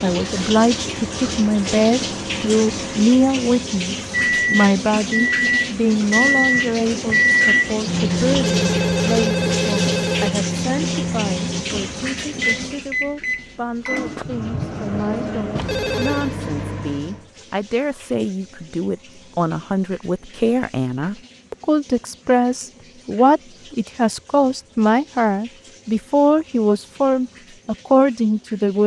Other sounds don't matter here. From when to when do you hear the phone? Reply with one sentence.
You can hear the phone from 8.3 to 10.3 s and from 15.6 to 16.4 s.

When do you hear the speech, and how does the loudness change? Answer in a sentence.
The speech can be heard from 0.0 to 28.8 s, getting quieter then louder.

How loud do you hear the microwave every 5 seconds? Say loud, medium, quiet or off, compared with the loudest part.
medium, loud, medium, medium, off, off.